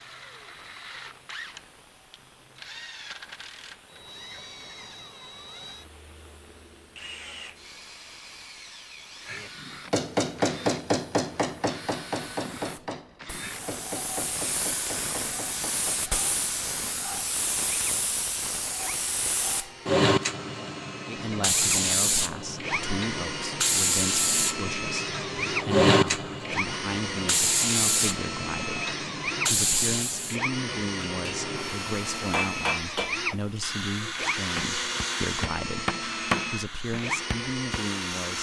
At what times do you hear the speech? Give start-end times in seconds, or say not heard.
21.1-38.3.